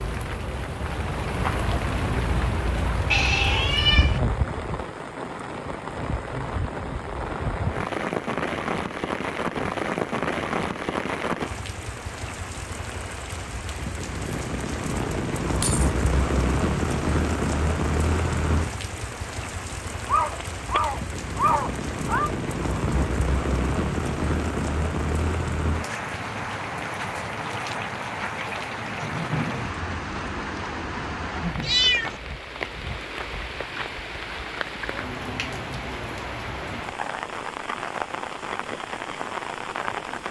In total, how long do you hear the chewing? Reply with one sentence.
You can't hear the chewing here.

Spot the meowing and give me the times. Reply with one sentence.
The meowing can be heard from 3.0 to 4.2 s, from 20.1 to 22.3 s and from 31.6 to 32.2 s.